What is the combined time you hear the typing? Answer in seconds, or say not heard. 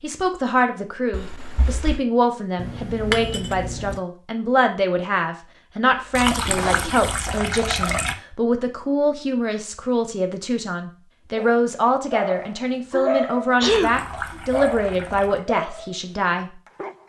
not heard.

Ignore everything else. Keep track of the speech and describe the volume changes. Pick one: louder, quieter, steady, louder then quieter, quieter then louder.
steady.